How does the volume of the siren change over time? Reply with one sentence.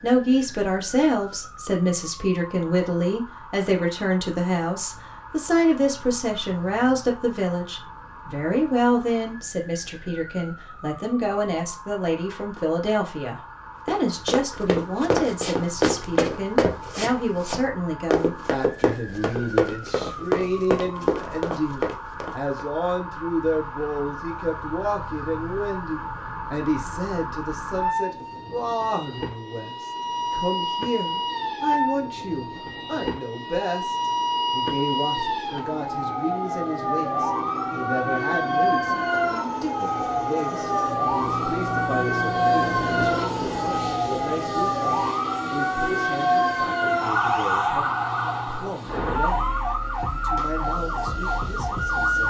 The loudness of the siren goes up.